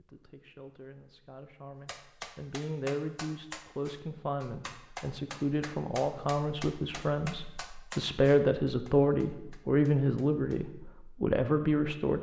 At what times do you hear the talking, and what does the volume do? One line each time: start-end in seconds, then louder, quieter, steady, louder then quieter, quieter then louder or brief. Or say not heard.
0.0-12.1 louder.